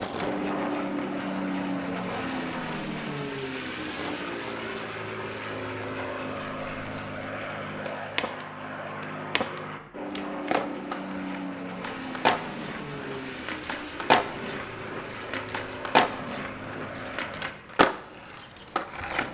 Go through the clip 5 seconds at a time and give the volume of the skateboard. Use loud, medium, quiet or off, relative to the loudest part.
medium, medium, loud, loud.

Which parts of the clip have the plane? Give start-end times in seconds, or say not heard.
0.0-17.5.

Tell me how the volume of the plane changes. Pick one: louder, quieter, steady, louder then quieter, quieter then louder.
quieter.